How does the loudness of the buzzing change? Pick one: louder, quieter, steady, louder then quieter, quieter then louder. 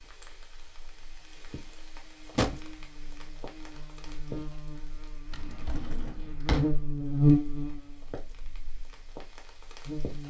louder then quieter.